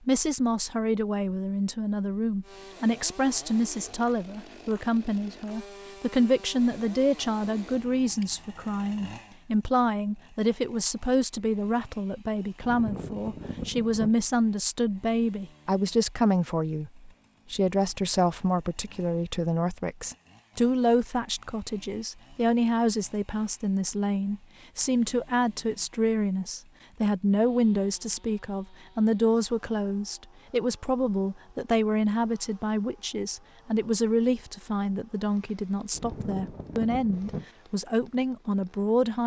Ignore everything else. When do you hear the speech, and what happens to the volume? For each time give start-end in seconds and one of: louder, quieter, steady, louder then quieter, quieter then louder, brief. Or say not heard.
0.1-39.2 steady.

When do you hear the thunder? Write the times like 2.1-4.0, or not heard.
12.6-14.2, 35.9-37.5.